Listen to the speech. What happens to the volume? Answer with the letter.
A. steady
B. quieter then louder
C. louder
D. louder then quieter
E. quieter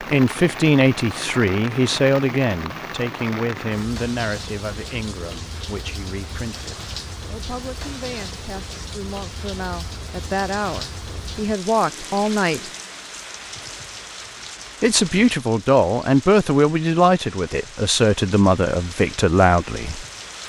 B.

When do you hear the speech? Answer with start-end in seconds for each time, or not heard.
0.0-12.7, 14.8-20.1.